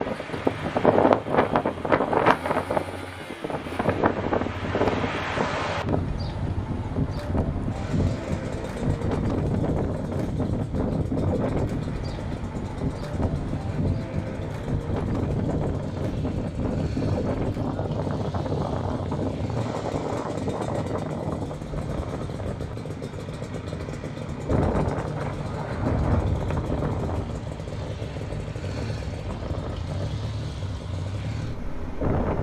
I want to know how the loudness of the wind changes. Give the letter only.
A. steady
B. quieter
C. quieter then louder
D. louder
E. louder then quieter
B.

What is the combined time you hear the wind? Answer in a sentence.
The wind can be heard for 32 seconds in total.